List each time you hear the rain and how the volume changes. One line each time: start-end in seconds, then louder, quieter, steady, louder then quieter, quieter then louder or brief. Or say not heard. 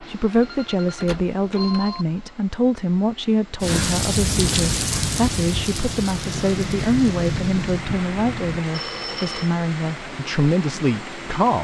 3.6-11.6 quieter.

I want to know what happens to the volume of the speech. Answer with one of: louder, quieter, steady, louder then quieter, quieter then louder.
steady.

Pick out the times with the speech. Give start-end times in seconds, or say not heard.
0.0-11.6.